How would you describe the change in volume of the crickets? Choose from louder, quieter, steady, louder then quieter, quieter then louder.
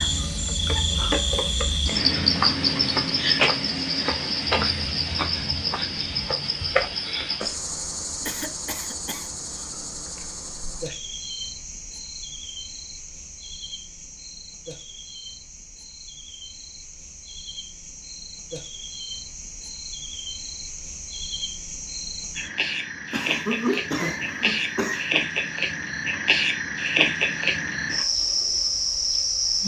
quieter then louder.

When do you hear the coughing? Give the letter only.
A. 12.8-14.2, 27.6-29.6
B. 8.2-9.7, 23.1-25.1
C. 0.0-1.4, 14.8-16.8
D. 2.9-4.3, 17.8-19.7
B.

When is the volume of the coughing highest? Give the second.
24 s.